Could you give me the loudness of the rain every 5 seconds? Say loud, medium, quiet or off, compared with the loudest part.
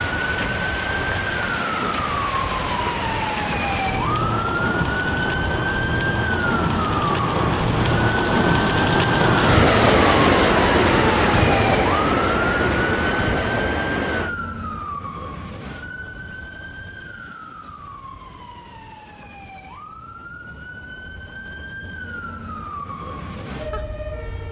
medium, loud, loud, off, off.